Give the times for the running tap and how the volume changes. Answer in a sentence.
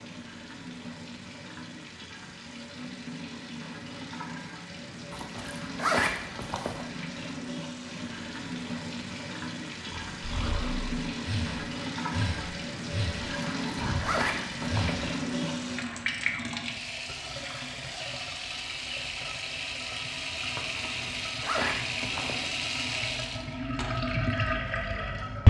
The running tap can be heard from 0.0 to 25.4 s, getting louder.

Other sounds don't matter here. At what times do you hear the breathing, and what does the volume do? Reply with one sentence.
You can hear the breathing from 9.8 to 15.0 s, at a steady volume.